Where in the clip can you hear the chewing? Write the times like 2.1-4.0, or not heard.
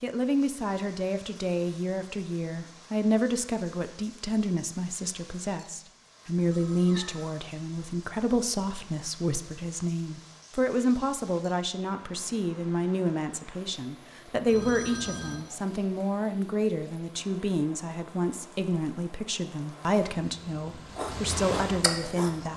20.9-22.3.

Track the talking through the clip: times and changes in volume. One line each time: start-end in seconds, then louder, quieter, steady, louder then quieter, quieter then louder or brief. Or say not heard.
0.0-22.5 steady.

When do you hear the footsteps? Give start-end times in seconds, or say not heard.
not heard.